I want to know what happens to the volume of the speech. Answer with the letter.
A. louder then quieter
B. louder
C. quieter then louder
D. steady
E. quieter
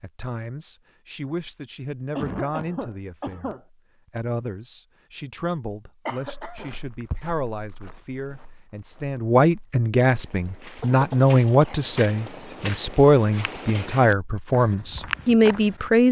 B.